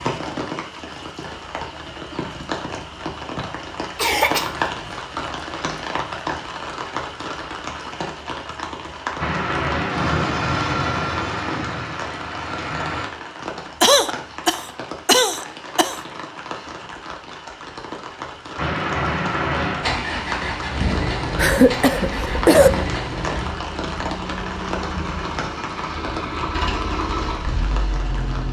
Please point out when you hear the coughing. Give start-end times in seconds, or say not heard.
4.0-4.5, 13.8-15.9, 21.4-22.7.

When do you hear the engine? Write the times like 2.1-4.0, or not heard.
9.2-13.1, 18.6-28.4.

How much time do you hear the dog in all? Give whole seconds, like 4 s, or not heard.
not heard.